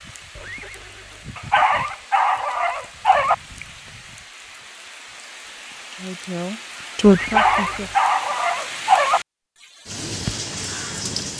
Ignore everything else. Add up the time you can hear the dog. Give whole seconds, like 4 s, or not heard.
4 s.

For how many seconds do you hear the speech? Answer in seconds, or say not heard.
2 s.